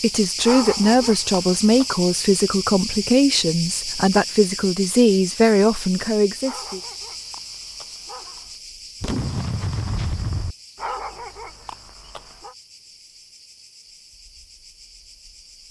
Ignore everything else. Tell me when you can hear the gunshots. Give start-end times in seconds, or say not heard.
9.0-10.6.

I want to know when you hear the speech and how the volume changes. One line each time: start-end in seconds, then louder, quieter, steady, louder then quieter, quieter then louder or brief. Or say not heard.
0.0-6.8 steady.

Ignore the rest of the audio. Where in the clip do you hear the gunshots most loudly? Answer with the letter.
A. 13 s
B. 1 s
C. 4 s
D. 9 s
D.